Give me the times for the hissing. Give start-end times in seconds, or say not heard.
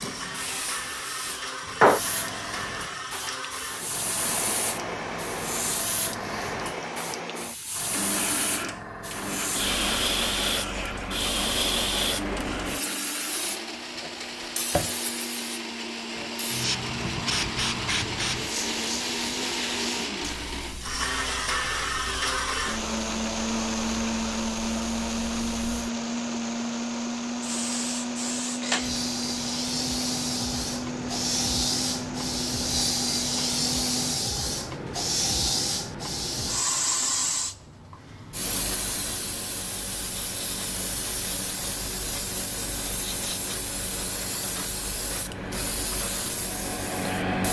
0.0-47.4.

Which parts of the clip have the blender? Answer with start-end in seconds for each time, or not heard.
0.0-34.1.